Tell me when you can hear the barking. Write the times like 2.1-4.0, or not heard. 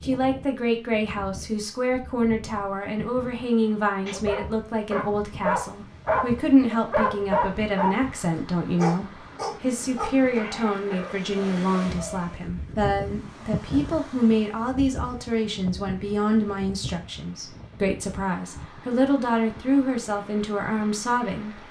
4.0-12.3.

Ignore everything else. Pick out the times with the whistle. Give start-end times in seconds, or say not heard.
not heard.